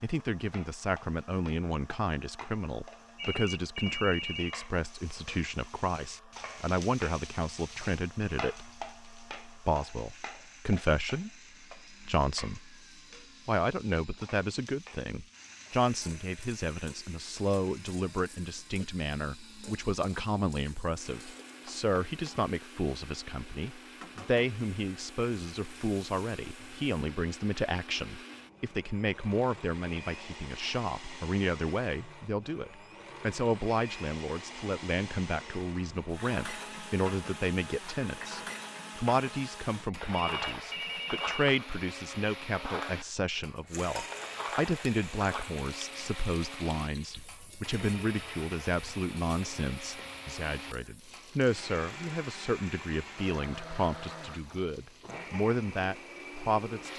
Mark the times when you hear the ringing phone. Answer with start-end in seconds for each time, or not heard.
3.1-4.5, 40.1-41.5.